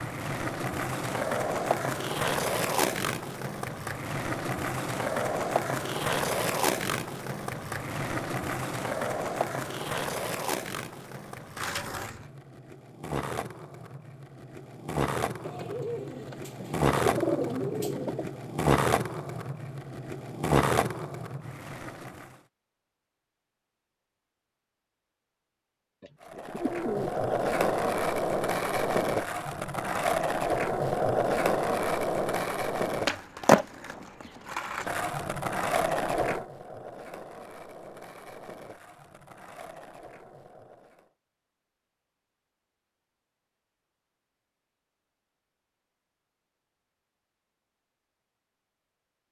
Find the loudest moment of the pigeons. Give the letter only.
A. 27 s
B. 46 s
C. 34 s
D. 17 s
D.